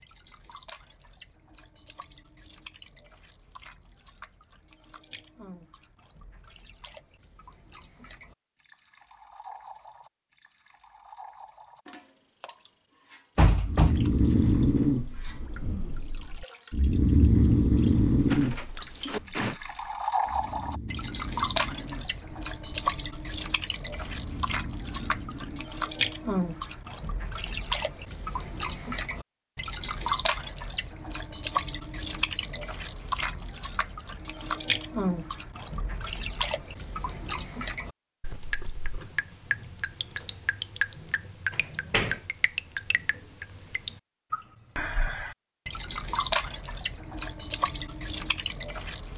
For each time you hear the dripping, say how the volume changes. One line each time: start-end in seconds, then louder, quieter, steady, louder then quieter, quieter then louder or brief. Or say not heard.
0.0-49.1 louder.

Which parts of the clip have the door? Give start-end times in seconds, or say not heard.
13.3-14.0, 18.3-19.6, 41.5-42.2.